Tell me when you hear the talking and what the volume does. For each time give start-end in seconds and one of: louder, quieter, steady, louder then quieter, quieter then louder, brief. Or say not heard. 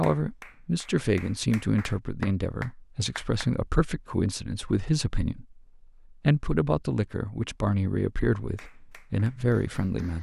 0.0-10.1 steady.